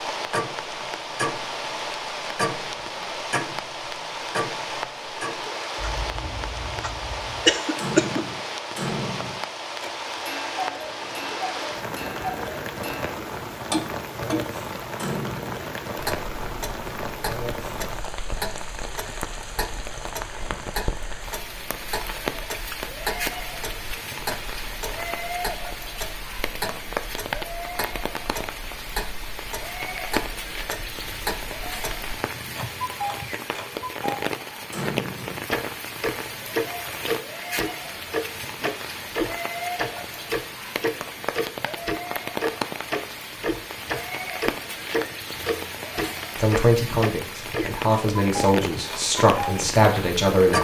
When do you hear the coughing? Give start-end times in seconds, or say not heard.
7.5-8.2.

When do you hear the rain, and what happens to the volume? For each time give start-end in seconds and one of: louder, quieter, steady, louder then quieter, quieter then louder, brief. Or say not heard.
0.0-50.5 steady.